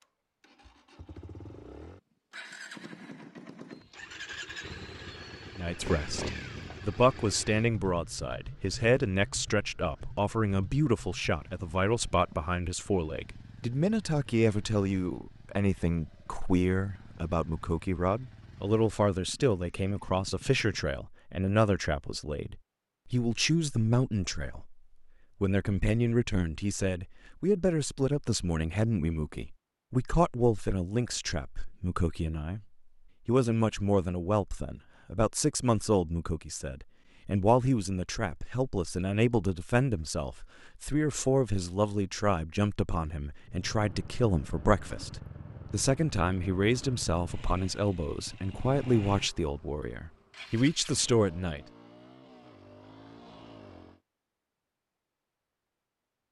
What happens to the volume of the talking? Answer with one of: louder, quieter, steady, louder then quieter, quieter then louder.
steady.